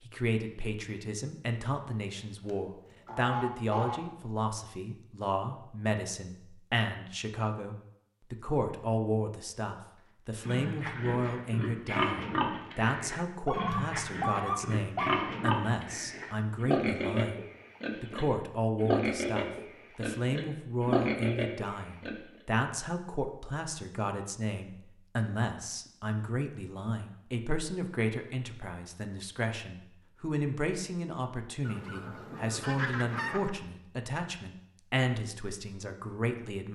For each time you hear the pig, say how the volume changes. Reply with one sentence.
The pig can be heard from 10.4 to 22.1 s, at a steady volume.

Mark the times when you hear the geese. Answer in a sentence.
The geese can be heard from 2.5 to 4.0 s, from 13.4 to 15.2 s and from 31.6 to 33.5 s.